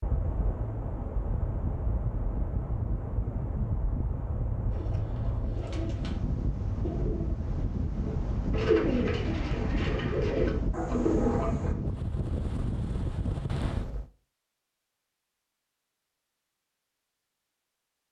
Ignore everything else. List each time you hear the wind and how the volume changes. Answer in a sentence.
You can hear the wind from 0.0 to 14.1 s, at a steady volume.